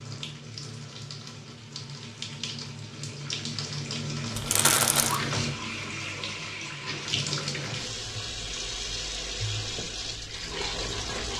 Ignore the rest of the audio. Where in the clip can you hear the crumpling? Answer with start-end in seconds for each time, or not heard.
4.3-5.2.